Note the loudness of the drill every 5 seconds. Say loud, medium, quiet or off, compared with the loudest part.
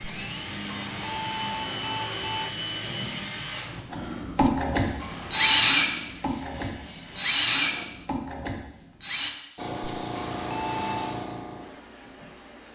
medium, loud, off.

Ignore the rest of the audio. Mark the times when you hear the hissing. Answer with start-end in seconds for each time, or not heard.
4.8-7.8, 9.6-12.7.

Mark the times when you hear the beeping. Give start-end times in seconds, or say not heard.
0.7-2.5, 5.0-5.8, 10.2-11.2.